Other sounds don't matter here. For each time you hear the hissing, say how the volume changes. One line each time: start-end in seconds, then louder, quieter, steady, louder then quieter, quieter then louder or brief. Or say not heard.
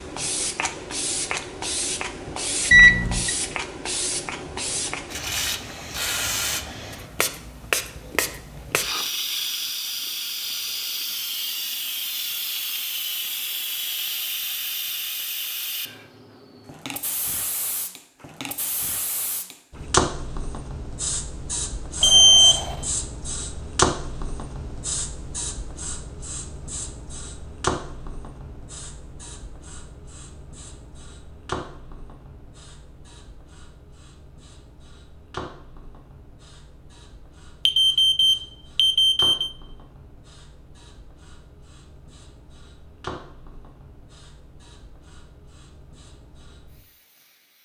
0.0-47.6 quieter.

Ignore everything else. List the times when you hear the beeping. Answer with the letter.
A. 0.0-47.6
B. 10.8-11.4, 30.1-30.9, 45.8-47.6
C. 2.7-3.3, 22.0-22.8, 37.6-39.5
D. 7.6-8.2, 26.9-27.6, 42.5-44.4
C.